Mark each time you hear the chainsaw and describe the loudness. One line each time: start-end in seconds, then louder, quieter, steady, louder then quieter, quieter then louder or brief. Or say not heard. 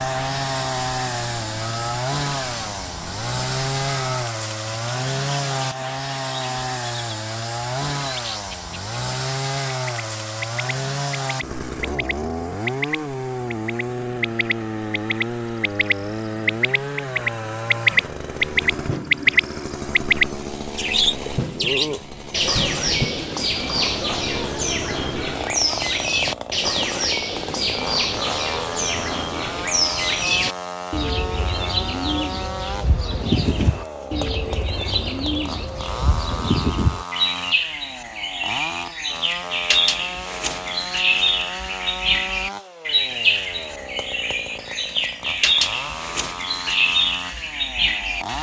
0.0-48.3 quieter.